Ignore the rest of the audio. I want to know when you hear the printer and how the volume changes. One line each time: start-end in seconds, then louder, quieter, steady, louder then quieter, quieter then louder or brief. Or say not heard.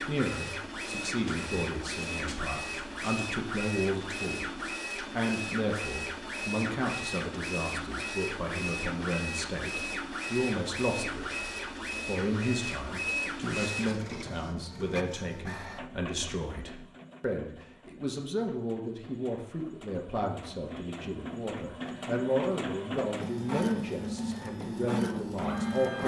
0.0-26.0 quieter then louder.